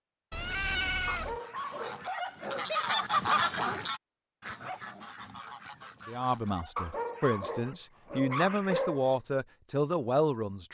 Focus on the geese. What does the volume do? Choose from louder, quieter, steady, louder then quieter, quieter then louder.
louder then quieter.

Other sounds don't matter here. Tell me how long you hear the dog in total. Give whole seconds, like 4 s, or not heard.
4 s.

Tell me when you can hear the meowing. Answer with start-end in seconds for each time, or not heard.
0.3-1.4.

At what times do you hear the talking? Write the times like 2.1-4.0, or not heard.
6.0-10.7.